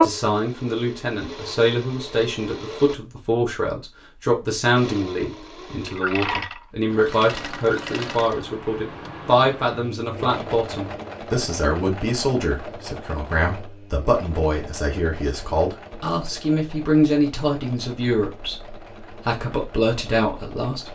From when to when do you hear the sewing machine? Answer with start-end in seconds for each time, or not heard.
0.0-3.0, 4.8-20.9.